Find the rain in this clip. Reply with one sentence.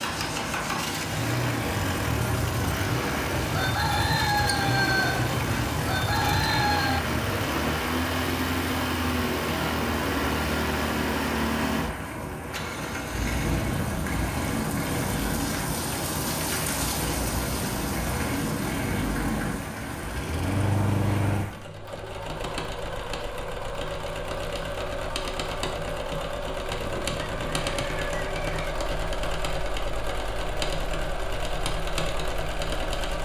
The rain can be heard from 0.0 to 21.6 s.